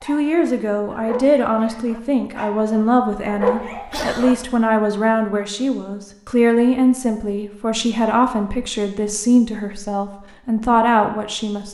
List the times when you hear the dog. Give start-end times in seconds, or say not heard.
0.0-4.3.